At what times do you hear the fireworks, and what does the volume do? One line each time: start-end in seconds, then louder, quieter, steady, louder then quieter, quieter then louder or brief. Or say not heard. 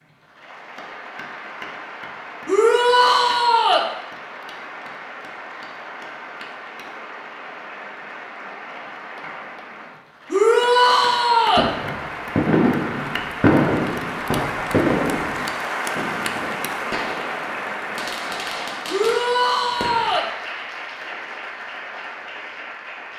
11.6-20.2 quieter.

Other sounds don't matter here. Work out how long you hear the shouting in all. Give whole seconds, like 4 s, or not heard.
4 s.